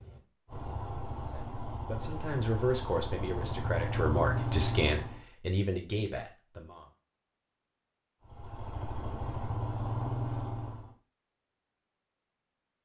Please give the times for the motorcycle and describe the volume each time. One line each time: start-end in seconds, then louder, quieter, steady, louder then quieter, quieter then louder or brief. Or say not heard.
0.0-5.2 louder
8.2-10.9 brief.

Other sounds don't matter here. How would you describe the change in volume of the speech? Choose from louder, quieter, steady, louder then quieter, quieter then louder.
steady.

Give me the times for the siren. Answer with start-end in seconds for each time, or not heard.
not heard.